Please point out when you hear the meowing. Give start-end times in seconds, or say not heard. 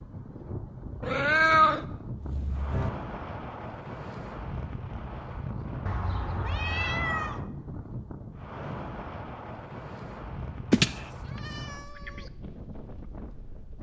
1.0-2.9, 5.8-7.5, 10.7-12.1.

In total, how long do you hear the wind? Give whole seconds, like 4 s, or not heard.
14 s.